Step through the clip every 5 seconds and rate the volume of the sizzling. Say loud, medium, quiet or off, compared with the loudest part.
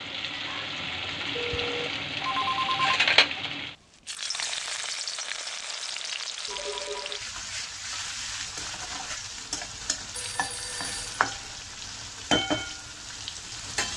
loud, medium, loud.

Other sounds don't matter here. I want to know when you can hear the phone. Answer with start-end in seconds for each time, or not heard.
1.4-2.9, 6.5-7.2, 10.1-11.2.